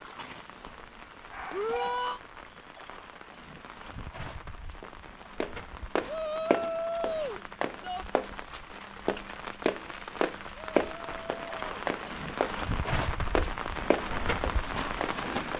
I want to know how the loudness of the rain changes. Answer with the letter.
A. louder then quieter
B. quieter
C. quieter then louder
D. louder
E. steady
D.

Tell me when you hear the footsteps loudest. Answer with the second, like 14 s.
11 s.